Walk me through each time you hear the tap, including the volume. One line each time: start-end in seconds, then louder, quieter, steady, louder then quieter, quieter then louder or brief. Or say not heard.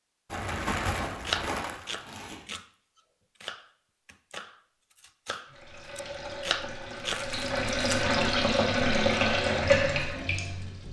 5.5-10.8 louder.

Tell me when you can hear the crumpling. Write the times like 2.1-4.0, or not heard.
0.2-2.5, 7.0-8.2.